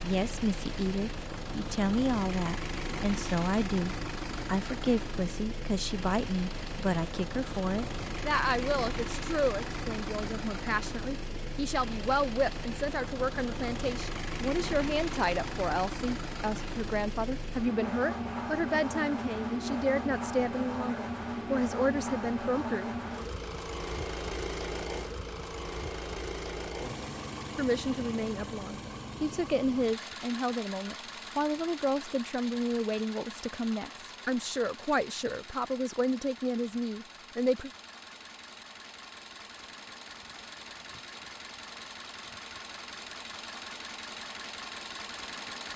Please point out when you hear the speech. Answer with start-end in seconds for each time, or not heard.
0.0-22.9, 27.6-37.7.